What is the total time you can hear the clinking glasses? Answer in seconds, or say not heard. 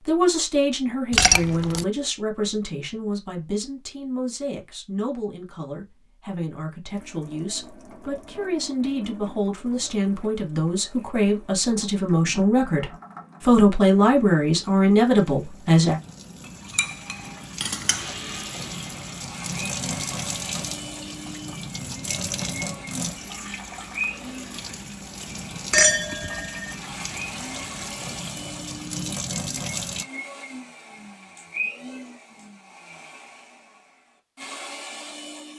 3 s.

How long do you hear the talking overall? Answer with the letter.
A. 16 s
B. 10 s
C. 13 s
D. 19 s
A.